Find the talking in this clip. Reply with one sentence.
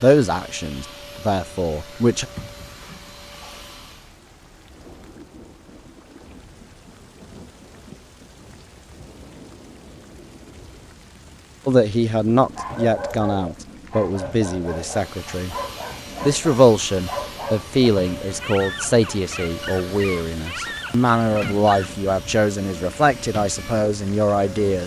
You can hear the talking from 0.0 to 2.2 s, from 11.7 to 15.6 s and from 16.2 to 24.8 s.